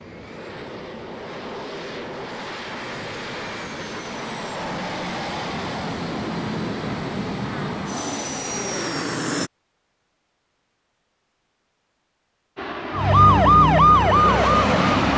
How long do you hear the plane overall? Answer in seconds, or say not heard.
12 s.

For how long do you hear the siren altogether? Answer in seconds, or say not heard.
2 s.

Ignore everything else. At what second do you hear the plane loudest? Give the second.
15 s.